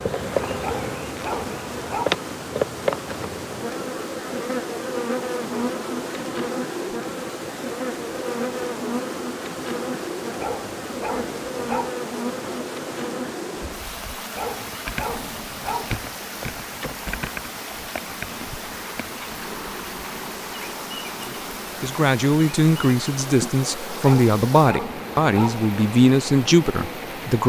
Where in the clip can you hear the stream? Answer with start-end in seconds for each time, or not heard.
0.0-27.4.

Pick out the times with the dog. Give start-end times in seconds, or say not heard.
0.6-2.1, 10.3-11.9, 14.3-15.9, 24.0-25.6.